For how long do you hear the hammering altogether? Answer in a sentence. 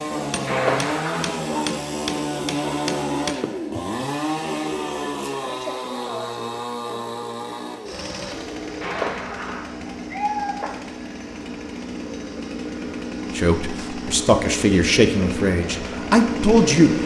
The hammering can be heard for 4 seconds in total.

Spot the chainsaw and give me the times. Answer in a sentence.
The chainsaw can be heard from 0.0 to 17.0 s.